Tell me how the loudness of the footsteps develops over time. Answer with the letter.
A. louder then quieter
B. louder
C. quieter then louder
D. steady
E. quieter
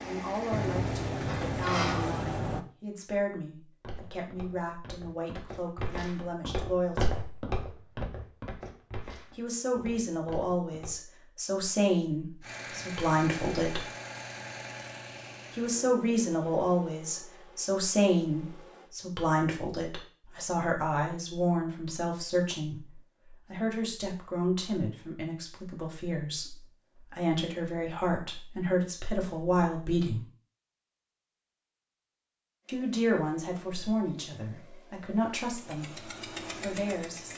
A.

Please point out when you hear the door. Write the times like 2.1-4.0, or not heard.
0.5-2.6.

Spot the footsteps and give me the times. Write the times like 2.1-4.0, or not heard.
3.8-10.9.